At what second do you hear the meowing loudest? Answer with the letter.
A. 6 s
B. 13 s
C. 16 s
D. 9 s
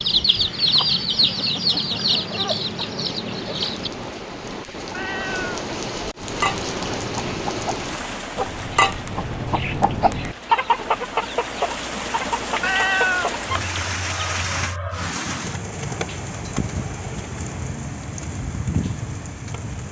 B.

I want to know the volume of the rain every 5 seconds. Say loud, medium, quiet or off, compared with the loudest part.
medium, loud, loud, loud.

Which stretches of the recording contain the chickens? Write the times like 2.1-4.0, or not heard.
0.0-3.9, 6.2-15.1.